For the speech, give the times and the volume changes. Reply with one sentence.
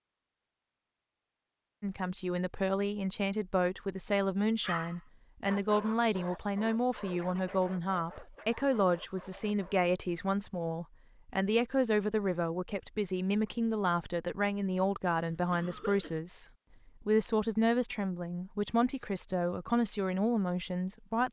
The speech can be heard from 1.8 to 21.2 s, at a steady volume.